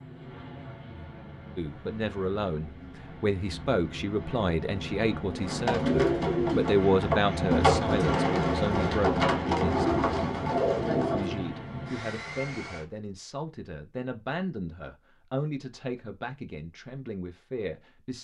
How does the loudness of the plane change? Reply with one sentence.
The volume of the plane goes up, then down.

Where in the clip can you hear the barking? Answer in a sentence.
You can't hear the barking here.